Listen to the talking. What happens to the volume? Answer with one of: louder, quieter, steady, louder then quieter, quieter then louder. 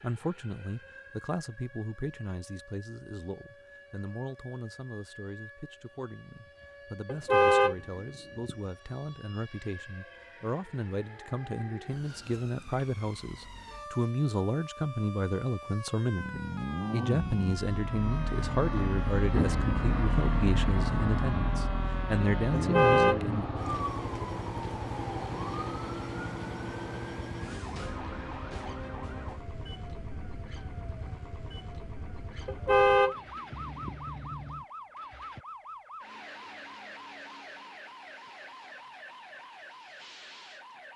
louder.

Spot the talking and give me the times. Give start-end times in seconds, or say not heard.
0.0-23.5.